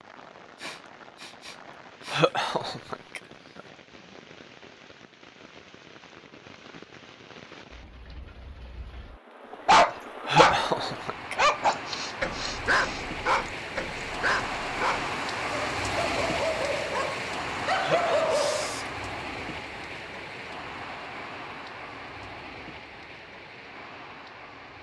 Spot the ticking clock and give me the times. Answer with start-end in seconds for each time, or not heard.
not heard.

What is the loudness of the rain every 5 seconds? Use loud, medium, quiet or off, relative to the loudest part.
quiet, quiet, loud, loud, medium.